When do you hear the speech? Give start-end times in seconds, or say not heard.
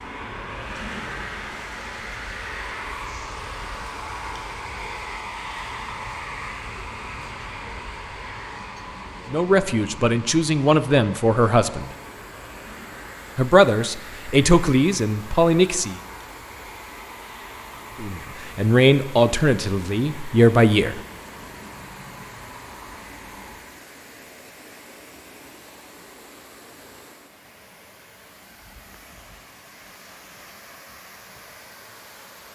9.3-11.9, 13.3-15.9, 17.9-21.0.